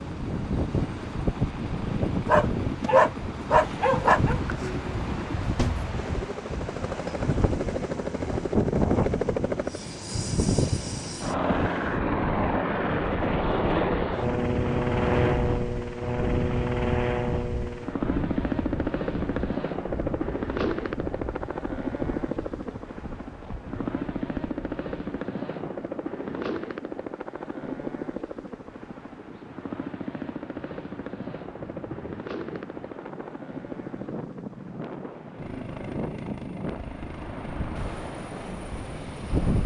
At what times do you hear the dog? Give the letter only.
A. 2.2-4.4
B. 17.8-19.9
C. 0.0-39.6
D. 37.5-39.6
A.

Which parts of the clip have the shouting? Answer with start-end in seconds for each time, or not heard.
not heard.